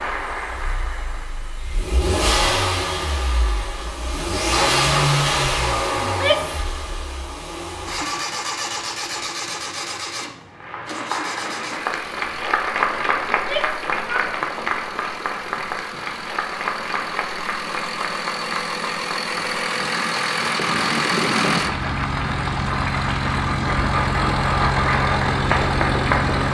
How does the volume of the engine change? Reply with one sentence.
The volume of the engine goes down, then up.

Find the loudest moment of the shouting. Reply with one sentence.
The volume of the shouting peaks at 6 seconds.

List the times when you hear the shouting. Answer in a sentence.
You can hear the shouting from 6.0 to 6.6 s and from 13.3 to 14.3 s.